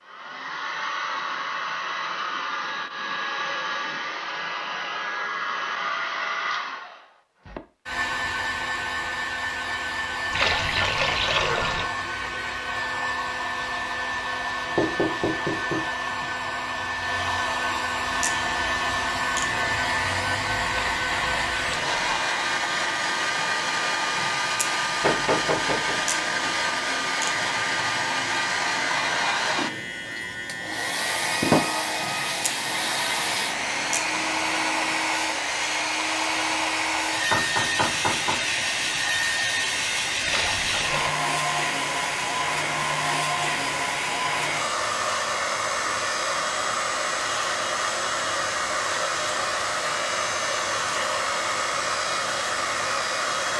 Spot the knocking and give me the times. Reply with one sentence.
You can hear the knocking from 14.8 to 16.2 s, from 25.0 to 26.0 s and from 37.3 to 38.4 s.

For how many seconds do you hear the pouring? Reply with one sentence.
You can hear the pouring for 4 seconds altogether.